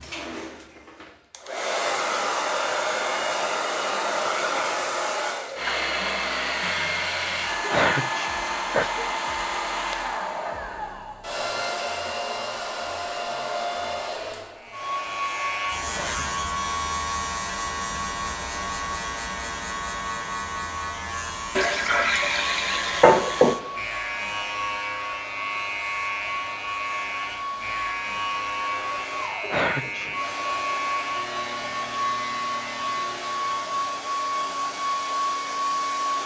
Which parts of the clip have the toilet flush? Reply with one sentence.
The toilet flush can be heard from 21.6 to 23.6 s.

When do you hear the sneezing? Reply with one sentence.
You can hear the sneezing from 7.6 to 9.6 s, from 15.8 to 16.3 s and from 29.4 to 30.1 s.